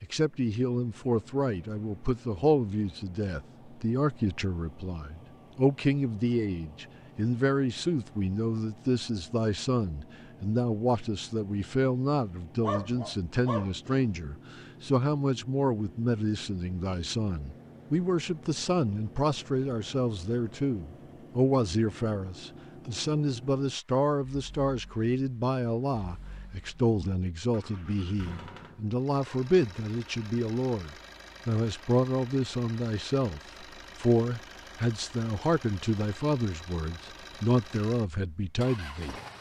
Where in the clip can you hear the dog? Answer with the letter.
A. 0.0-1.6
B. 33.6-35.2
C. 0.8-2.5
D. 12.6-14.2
D.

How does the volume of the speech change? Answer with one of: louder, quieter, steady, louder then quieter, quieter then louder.
steady.